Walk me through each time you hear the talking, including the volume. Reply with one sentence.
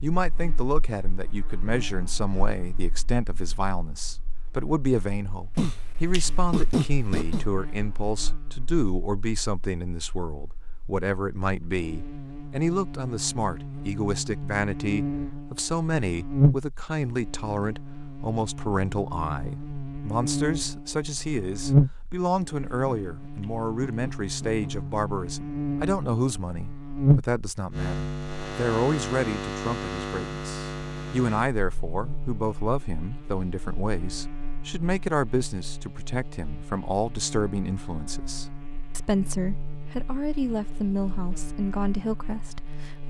You can hear the talking from 0.0 to 43.0 s, at a steady volume.